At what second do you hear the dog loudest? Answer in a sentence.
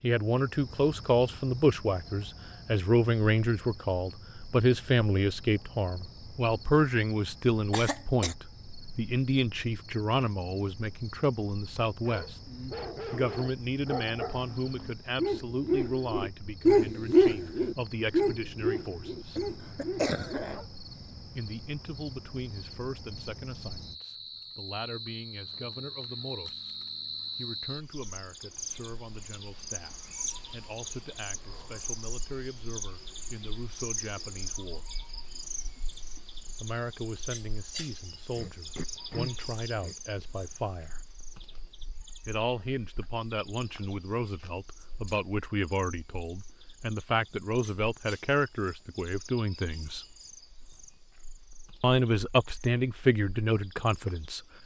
The loudest moment of the dog is at 17 seconds.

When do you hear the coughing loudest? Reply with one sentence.
The volume of the coughing peaks at 20 seconds.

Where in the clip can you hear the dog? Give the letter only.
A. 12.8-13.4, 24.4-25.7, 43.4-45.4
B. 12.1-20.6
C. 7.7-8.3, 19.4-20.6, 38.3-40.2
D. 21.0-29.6
B.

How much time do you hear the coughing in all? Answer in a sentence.
You can hear the coughing for 4 seconds altogether.